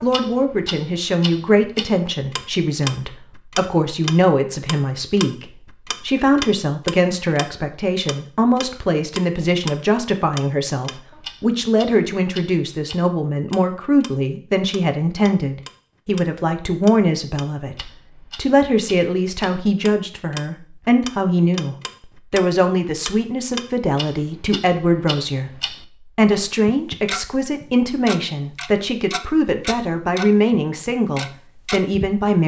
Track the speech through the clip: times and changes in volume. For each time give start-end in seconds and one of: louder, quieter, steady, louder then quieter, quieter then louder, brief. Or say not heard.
0.0-32.4 steady.